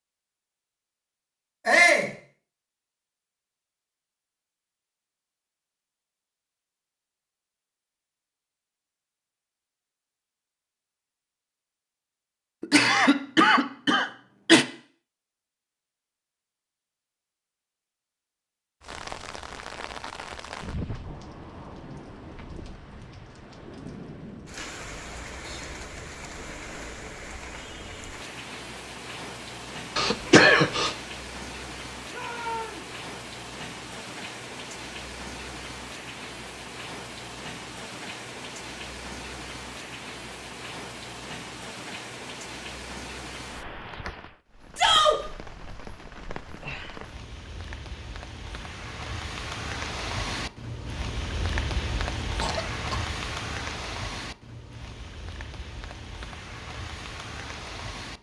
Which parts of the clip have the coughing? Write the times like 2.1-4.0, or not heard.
12.6-14.7, 29.9-30.9, 52.4-53.0.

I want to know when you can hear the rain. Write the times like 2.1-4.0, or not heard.
18.8-58.1.